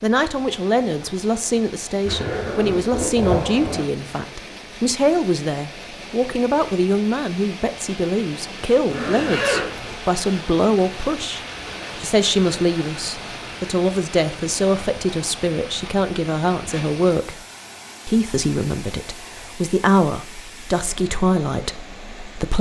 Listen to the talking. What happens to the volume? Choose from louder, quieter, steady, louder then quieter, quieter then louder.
steady.